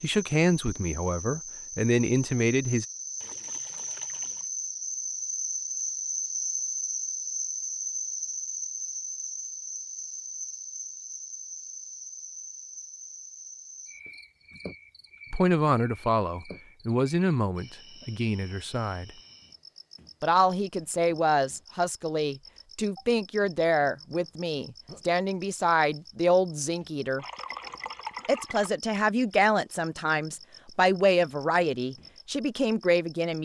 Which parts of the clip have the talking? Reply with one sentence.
You can hear the talking from 0.0 to 2.9 s, from 15.3 to 19.1 s, from 20.2 to 27.2 s and from 28.2 to 33.4 s.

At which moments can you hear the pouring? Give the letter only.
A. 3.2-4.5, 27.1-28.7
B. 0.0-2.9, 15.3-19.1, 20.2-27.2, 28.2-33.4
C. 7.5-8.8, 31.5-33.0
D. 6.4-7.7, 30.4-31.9
A.